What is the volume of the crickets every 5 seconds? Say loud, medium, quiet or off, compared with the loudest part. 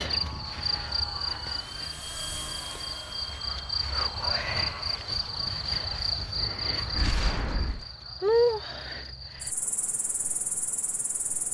loud, loud, medium.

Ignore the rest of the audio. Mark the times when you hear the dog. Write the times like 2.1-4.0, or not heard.
not heard.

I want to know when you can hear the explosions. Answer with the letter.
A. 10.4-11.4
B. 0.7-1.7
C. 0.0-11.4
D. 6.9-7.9
D.